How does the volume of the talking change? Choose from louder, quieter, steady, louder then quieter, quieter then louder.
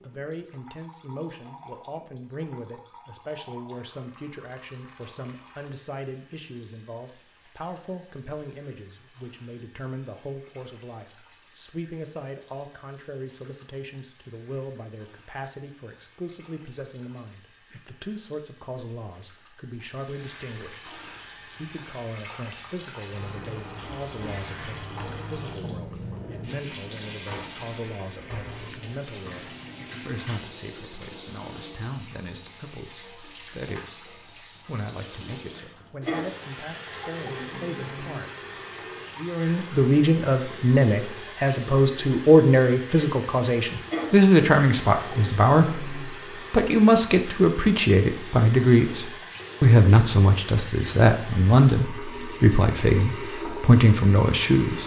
louder.